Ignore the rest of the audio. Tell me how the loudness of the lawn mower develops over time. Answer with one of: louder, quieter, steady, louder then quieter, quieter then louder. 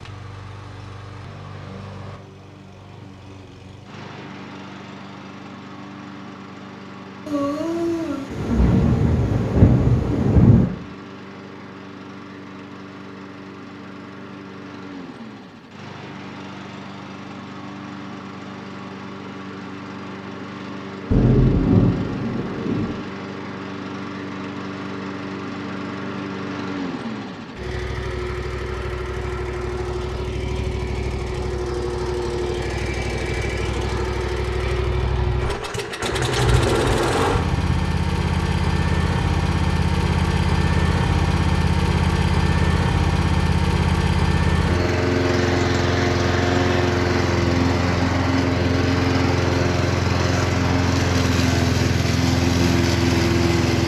louder.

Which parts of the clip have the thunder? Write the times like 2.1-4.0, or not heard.
7.2-10.7, 21.1-22.9, 36.1-37.9.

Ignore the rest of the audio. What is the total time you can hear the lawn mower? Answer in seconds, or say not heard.
54 s.